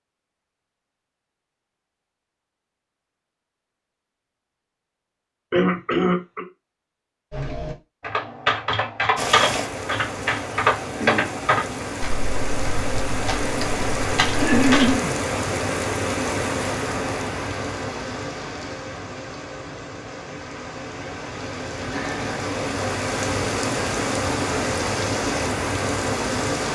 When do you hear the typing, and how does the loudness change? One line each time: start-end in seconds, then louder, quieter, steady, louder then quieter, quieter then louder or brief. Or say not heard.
7.3-14.9 quieter then louder.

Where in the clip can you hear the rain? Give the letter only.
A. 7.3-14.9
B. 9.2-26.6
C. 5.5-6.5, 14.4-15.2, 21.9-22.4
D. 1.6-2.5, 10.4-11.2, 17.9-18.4
B.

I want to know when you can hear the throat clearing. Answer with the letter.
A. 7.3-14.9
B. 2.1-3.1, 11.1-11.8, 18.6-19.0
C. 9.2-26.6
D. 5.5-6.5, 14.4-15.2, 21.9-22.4
D.